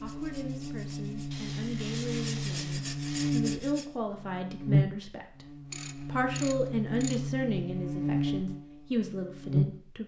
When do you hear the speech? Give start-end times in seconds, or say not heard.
0.0-5.5, 6.0-10.0.